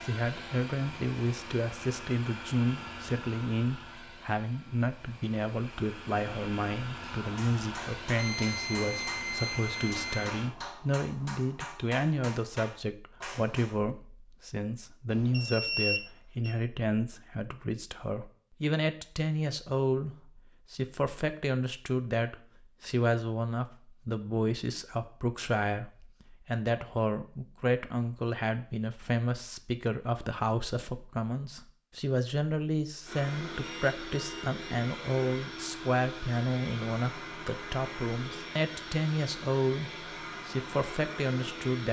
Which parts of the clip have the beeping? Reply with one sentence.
The beeping can be heard from 8.2 to 10.3 s, from 15.1 to 16.6 s and from 33.6 to 34.6 s.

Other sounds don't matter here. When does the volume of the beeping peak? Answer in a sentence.
The volume of the beeping peaks at 16 seconds.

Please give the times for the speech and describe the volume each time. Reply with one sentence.
You can hear the speech from 0.0 to 41.8 s, at a steady volume.